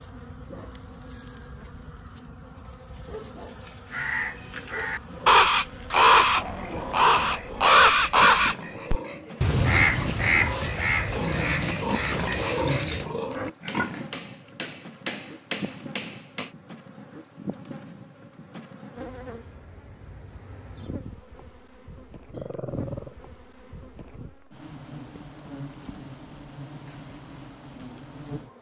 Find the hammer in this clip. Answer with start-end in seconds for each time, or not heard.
13.7-16.6.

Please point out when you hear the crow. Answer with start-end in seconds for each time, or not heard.
3.9-13.1.